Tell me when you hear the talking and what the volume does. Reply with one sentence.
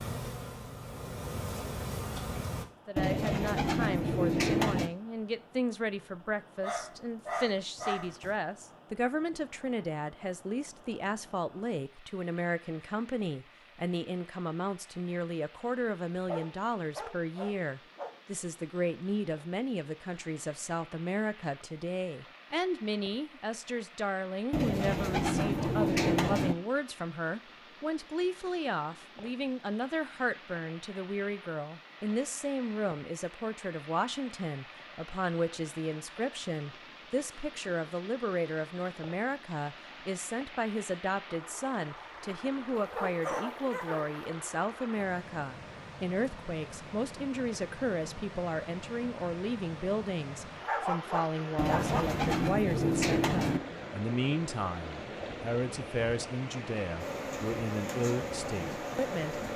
You can hear the talking from 2.9 to 59.5 s, at a steady volume.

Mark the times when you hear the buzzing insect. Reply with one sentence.
The buzzing insect can be heard from 0.0 to 2.6 s and from 57.0 to 59.5 s.